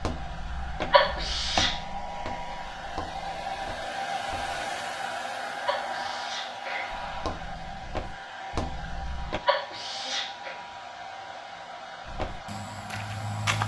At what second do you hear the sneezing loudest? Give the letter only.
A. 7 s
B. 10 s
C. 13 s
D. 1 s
D.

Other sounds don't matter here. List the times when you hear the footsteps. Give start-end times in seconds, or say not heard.
0.0-4.6, 6.9-9.4, 12.1-13.6.